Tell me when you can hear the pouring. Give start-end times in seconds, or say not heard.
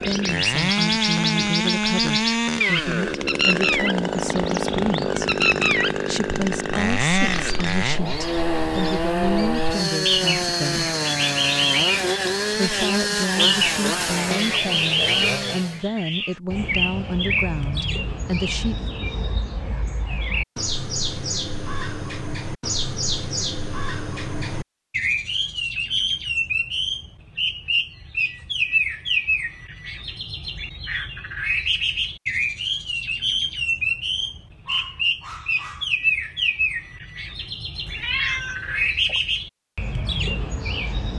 not heard.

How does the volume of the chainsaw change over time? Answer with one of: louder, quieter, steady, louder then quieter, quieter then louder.
steady.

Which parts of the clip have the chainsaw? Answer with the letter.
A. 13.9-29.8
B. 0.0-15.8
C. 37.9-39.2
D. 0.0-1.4
B.